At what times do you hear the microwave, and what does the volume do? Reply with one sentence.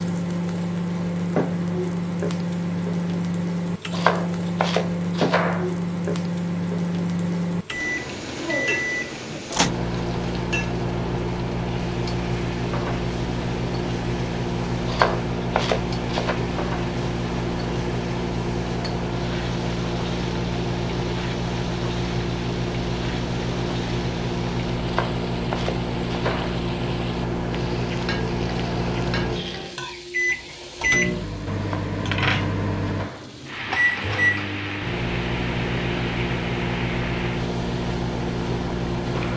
You can hear the microwave from 0.0 to 39.3 s, at a steady volume.